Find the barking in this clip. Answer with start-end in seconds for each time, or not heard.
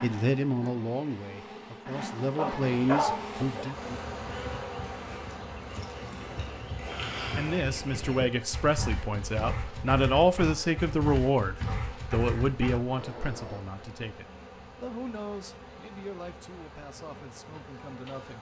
2.4-3.8.